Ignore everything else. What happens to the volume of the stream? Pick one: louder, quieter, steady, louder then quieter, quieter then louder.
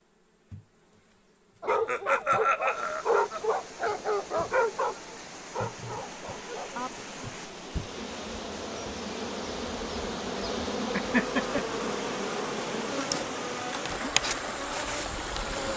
louder.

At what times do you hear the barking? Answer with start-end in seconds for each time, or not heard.
1.6-7.0.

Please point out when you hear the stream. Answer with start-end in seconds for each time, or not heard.
2.5-15.7.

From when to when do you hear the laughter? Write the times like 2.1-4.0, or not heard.
1.6-3.4, 10.9-11.7.